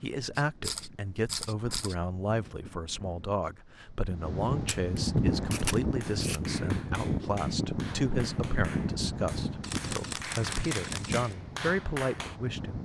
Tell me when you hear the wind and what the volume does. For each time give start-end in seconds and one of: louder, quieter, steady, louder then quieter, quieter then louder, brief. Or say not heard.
0.0-12.8 louder then quieter.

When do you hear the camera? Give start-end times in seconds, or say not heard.
0.3-1.9, 4.7-6.4, 9.6-11.3.